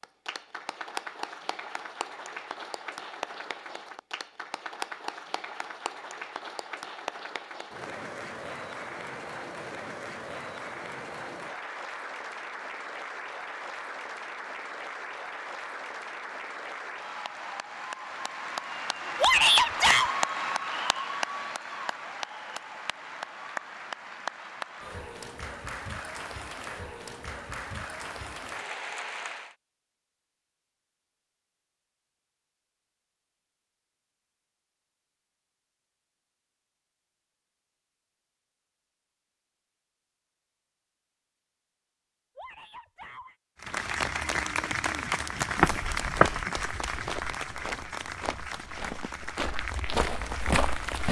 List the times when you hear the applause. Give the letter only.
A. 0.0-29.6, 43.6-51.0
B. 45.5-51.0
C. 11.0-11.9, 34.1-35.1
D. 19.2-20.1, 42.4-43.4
A.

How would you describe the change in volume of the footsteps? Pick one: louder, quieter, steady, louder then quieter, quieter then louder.
quieter then louder.